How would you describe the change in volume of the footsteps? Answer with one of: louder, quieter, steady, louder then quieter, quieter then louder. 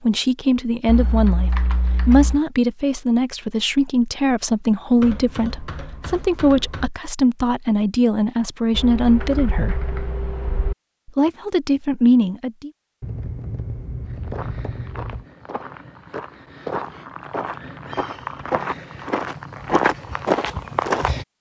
louder.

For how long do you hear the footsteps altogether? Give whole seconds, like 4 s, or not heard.
7 s.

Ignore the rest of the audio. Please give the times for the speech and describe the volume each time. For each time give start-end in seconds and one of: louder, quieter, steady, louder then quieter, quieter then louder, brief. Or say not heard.
0.0-9.8 steady
11.1-12.7 brief.